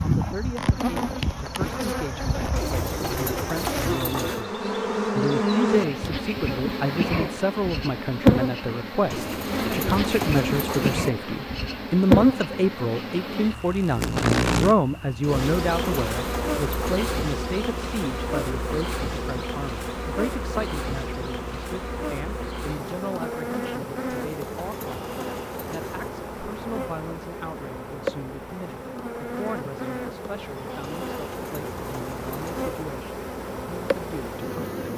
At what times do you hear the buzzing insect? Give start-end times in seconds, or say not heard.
0.0-34.9.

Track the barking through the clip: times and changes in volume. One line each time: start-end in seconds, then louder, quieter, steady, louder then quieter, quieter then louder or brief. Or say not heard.
not heard.